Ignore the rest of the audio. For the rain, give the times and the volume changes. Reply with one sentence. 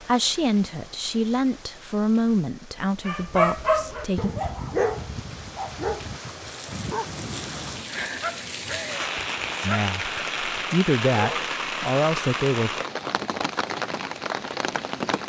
The rain can be heard from 0.0 to 15.2 s, getting louder.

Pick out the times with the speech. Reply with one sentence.
You can hear the speech from 0.1 to 4.3 s and from 9.6 to 12.7 s.